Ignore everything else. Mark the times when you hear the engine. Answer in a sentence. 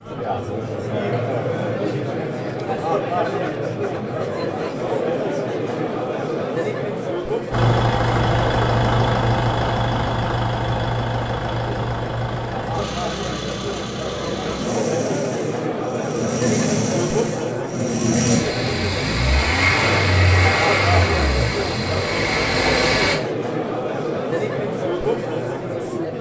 You can hear the engine from 7.5 to 23.2 s.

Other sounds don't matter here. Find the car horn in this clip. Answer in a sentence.
You can't hear the car horn here.